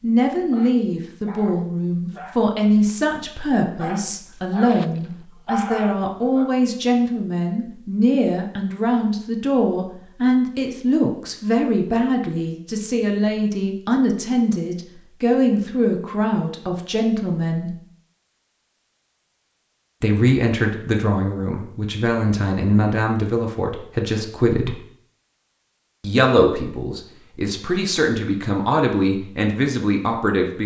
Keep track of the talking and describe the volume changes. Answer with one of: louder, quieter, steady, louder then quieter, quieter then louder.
steady.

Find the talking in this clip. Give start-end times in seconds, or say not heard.
0.0-17.8, 20.0-24.8, 26.0-30.6.